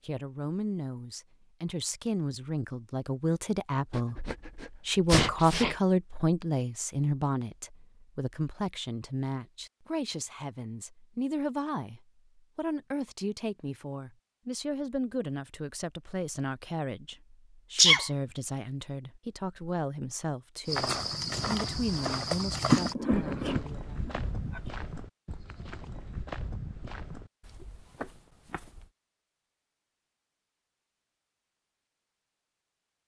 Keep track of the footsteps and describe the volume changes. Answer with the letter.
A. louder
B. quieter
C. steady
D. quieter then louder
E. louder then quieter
B.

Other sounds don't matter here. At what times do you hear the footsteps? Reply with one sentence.
You can hear the footsteps from 20.6 to 28.9 s.